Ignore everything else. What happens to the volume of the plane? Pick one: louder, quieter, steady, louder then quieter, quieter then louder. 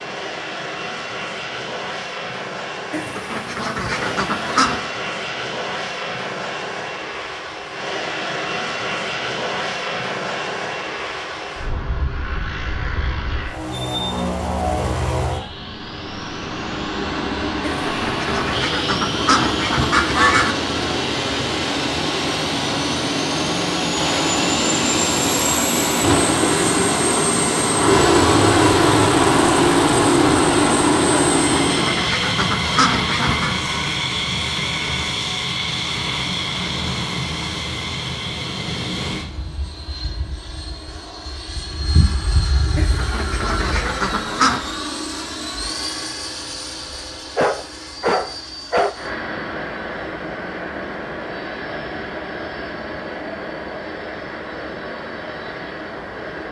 louder then quieter.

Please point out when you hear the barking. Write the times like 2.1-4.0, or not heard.
47.4-48.9.